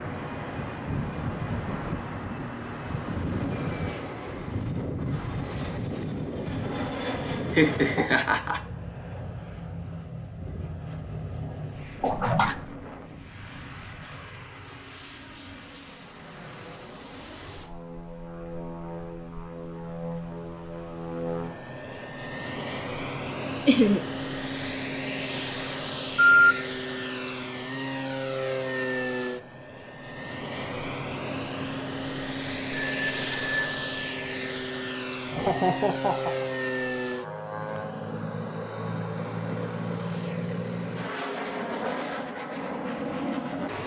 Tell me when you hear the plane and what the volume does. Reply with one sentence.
You can hear the plane from 0.0 to 43.8 s, getting quieter then louder.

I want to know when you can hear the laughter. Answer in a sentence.
The laughter can be heard from 7.5 to 8.6 s, from 23.6 to 24.1 s and from 35.3 to 36.5 s.